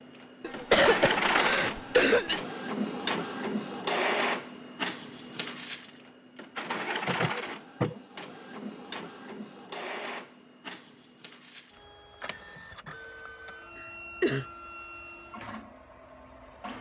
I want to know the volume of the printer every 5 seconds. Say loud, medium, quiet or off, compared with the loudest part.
loud, medium, quiet, quiet.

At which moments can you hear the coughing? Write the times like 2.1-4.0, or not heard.
0.4-2.4, 7.0-8.0, 13.8-14.4.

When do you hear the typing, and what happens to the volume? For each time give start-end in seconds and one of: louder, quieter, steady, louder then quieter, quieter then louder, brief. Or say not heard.
not heard.